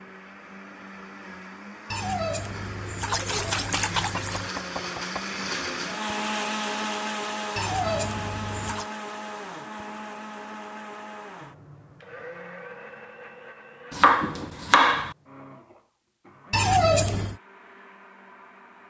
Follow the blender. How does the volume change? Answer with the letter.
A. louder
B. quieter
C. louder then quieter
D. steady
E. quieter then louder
C.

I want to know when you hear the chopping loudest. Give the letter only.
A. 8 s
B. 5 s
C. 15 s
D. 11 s
C.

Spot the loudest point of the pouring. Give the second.
17 s.